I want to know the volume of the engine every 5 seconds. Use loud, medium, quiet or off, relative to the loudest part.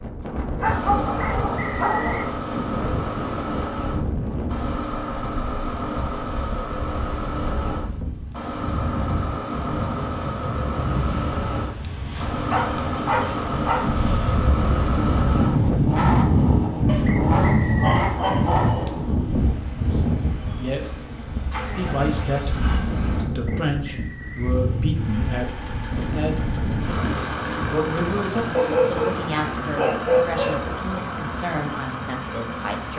loud, loud, loud, loud, medium, loud, loud.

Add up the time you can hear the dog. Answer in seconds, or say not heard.
7 s.